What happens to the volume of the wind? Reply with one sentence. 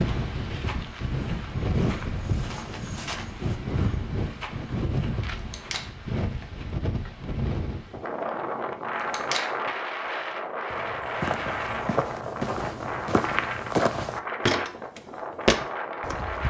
The loudness of the wind stays about the same.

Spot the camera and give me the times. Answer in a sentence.
The camera can be heard from 5.3 to 5.8 s and from 8.9 to 9.4 s.